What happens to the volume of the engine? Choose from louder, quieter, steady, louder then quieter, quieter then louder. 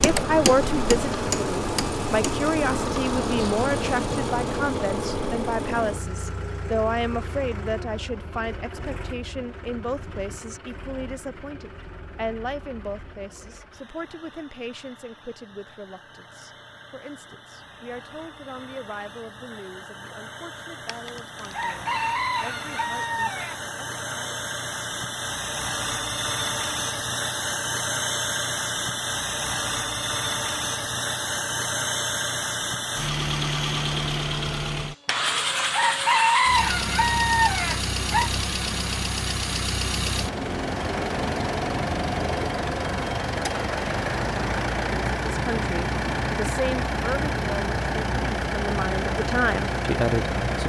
quieter then louder.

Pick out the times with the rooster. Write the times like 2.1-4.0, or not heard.
20.9-23.6, 35.0-38.3.